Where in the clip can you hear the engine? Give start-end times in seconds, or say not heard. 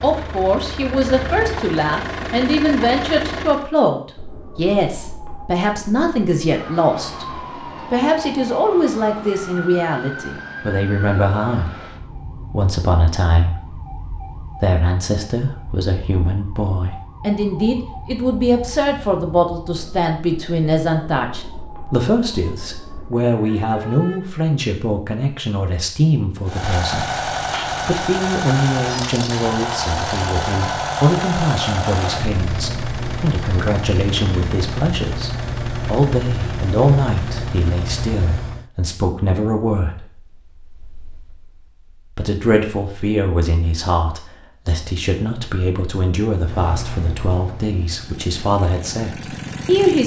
0.0-3.7, 26.4-38.7, 46.4-50.0.